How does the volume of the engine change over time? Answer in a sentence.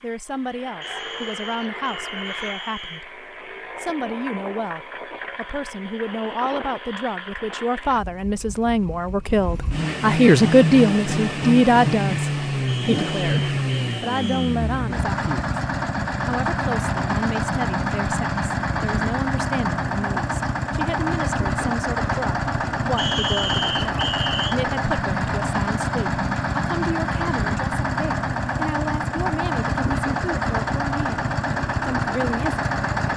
The loudness of the engine goes up.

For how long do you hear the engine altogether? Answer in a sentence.
You can hear the engine for 33 seconds altogether.